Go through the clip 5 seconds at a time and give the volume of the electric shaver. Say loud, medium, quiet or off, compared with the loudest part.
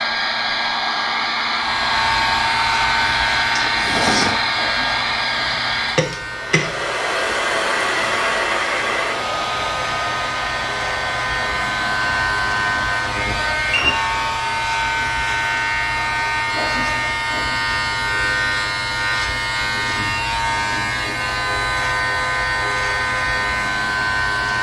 loud, medium, loud, loud, loud.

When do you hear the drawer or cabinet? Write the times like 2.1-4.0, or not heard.
3.5-4.4.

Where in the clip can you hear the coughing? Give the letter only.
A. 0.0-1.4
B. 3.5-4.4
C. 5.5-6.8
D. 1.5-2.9
C.